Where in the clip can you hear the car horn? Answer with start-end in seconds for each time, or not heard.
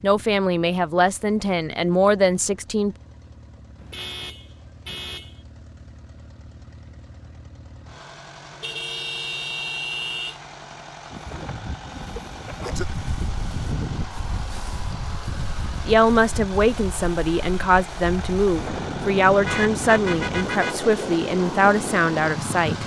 3.8-5.3, 8.6-10.4, 19.4-20.9.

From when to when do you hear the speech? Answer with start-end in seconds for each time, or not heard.
0.0-3.0, 15.8-22.8.